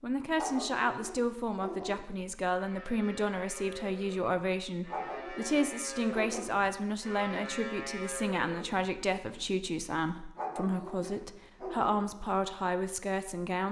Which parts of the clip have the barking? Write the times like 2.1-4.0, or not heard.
0.3-2.0, 4.8-6.7, 10.3-12.1.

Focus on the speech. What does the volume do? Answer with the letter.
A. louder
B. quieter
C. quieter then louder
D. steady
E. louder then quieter
D.